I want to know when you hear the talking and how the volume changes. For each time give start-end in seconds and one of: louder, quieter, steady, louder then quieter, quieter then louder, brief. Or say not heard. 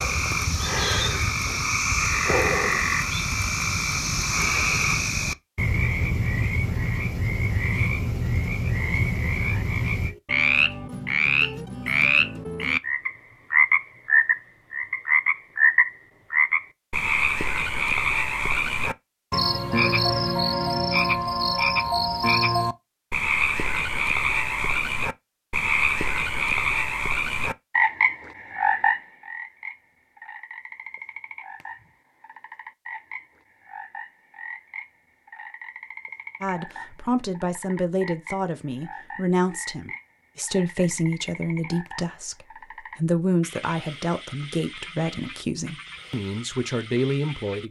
36.4-47.6 steady.